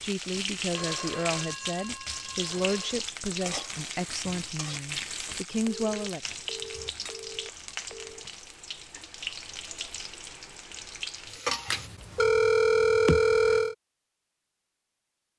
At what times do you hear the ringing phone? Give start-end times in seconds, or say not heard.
0.7-3.0, 5.7-8.3, 11.7-13.8.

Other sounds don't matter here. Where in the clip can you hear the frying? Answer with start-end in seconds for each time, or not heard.
0.0-11.9.